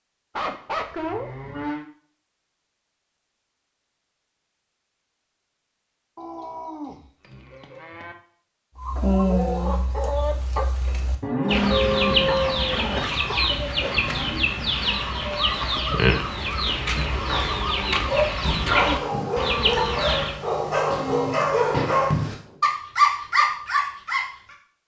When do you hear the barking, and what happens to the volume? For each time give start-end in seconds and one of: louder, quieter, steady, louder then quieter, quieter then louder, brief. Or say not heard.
18.1-24.6 louder.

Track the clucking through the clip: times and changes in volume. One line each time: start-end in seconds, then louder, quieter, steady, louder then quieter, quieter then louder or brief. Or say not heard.
8.8-20.4 steady.